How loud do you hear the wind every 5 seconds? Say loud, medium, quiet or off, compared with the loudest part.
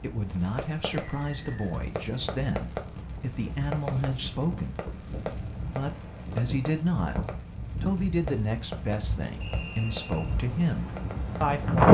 quiet, quiet, loud.